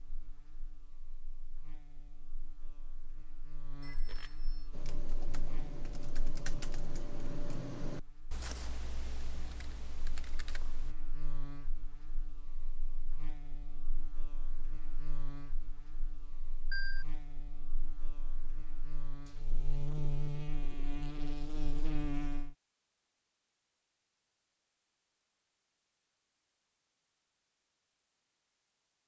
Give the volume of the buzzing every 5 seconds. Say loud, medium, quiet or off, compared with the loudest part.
quiet, quiet, quiet, medium, loud, off.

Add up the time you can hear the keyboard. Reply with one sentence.
The keyboard can be heard for 6 seconds in total.